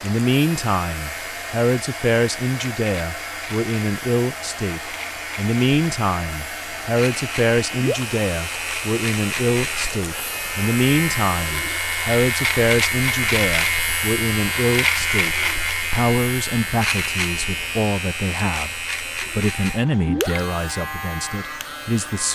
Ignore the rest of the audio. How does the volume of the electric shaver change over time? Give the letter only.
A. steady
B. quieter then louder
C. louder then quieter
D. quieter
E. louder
C.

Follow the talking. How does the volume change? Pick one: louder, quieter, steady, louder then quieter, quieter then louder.
steady.